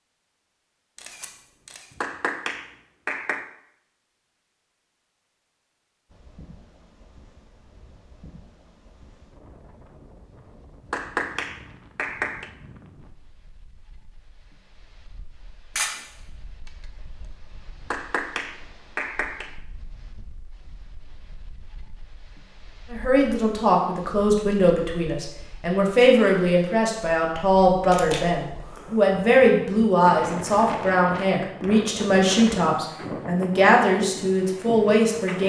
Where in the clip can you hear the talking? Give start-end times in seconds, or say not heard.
22.9-35.4.